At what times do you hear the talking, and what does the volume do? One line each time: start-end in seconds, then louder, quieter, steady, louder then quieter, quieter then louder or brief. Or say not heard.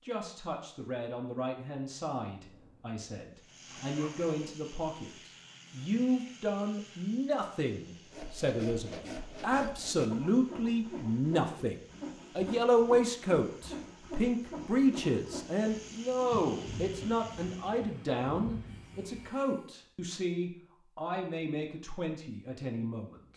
0.0-23.3 louder then quieter.